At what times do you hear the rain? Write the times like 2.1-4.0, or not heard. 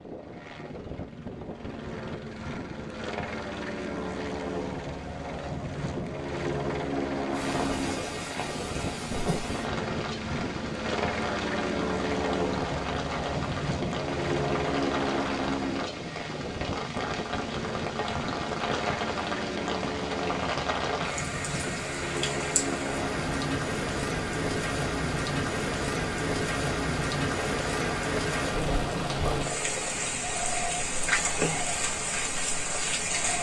7.3-33.3.